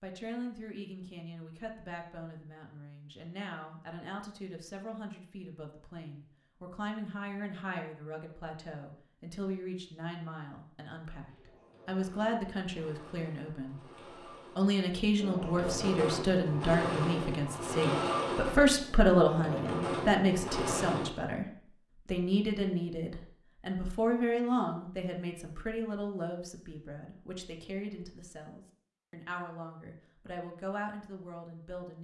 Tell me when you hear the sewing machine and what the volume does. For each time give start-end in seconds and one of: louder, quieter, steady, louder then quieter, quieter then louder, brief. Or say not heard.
11.2-21.1 louder.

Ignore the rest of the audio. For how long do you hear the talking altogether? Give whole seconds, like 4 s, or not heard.
31 s.